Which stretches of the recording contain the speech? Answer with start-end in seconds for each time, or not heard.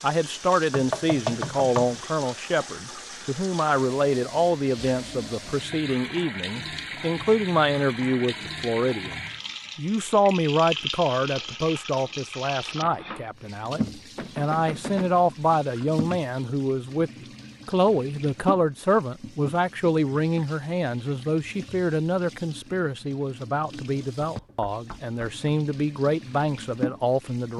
0.0-27.5.